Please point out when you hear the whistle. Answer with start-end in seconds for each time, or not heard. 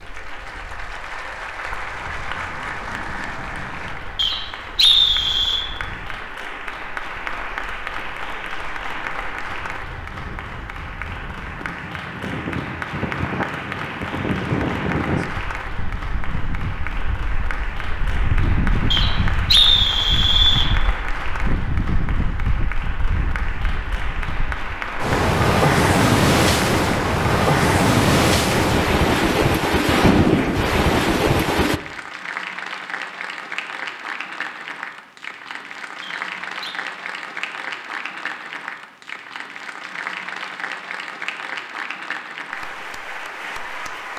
4.2-5.7, 18.9-20.7, 36.0-36.8.